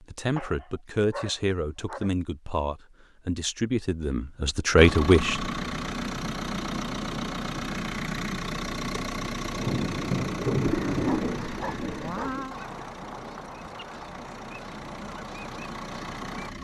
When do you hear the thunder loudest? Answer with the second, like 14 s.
11 s.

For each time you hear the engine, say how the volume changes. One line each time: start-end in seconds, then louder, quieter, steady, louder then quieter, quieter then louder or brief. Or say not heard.
4.8-16.5 quieter.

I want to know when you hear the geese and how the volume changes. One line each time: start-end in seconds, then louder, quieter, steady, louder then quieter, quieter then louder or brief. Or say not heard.
10.8-16.5 steady.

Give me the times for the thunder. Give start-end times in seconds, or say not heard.
9.4-12.6.